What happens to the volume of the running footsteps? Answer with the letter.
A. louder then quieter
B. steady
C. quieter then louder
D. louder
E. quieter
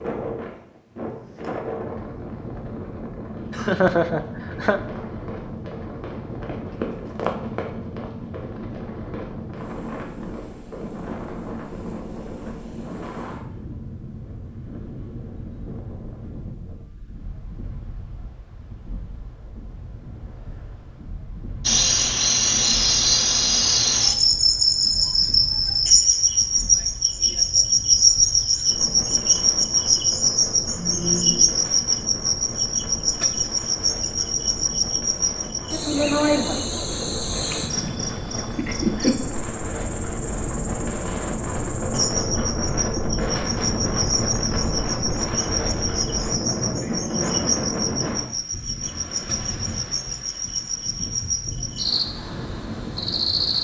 A.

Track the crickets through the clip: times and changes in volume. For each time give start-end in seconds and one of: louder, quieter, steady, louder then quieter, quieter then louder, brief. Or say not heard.
21.6-53.5 quieter.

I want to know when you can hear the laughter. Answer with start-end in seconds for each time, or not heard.
3.5-4.8.